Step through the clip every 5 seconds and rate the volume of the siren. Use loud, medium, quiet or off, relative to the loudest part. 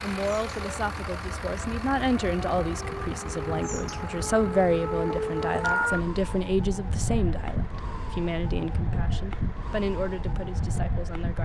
medium, loud, loud.